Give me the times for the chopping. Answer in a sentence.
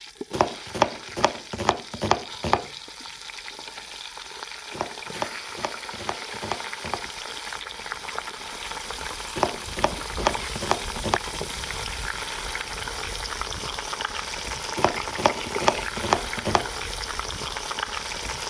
The chopping can be heard from 0.3 to 2.7 s, from 4.7 to 7.1 s, from 9.3 to 11.2 s and from 14.8 to 16.7 s.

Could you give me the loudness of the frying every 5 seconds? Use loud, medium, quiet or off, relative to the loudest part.
medium, loud, loud, loud.